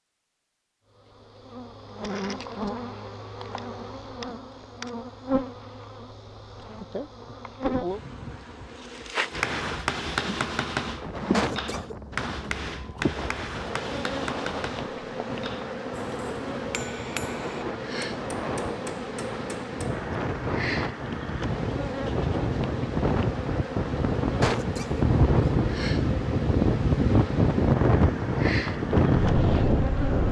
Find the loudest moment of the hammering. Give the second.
10 s.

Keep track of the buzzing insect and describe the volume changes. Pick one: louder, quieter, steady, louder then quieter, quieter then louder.
steady.